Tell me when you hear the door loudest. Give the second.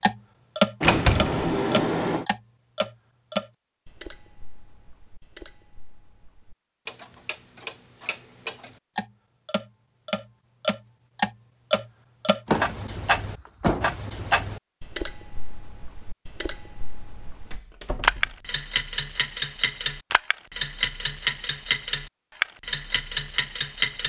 1 s.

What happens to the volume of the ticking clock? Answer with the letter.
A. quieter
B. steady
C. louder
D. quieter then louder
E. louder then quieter
D.